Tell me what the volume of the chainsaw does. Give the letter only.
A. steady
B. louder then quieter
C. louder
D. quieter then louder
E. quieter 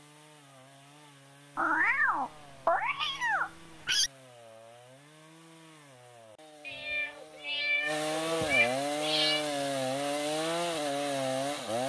C.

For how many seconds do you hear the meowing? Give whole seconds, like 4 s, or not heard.
5 s.